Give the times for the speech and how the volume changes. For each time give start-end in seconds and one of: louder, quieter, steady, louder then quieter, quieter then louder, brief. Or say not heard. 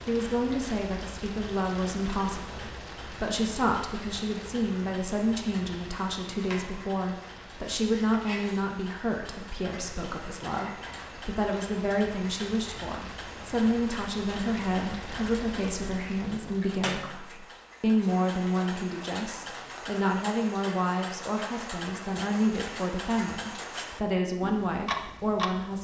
0.1-25.7 steady.